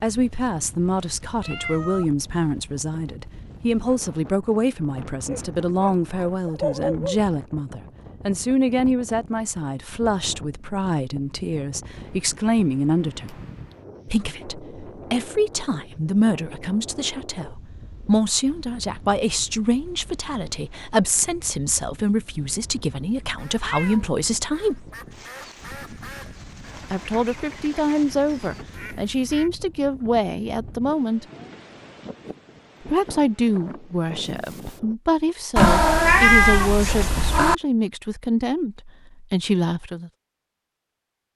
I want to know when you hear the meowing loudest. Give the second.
36 s.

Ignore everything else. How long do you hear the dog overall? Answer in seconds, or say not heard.
2 s.